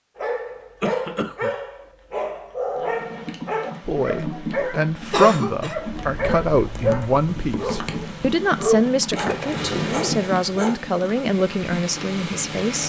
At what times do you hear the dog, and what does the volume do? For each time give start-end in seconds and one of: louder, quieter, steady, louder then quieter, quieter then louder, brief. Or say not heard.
0.1-10.8 steady.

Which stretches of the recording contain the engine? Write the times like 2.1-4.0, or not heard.
9.2-12.8.